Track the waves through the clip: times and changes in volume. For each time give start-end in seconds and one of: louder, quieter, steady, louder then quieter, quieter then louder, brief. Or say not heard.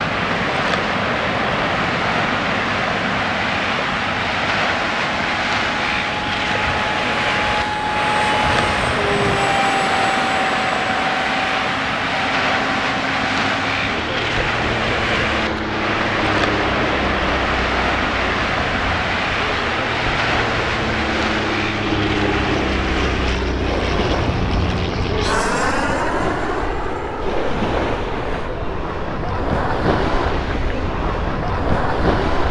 0.0-32.4 steady.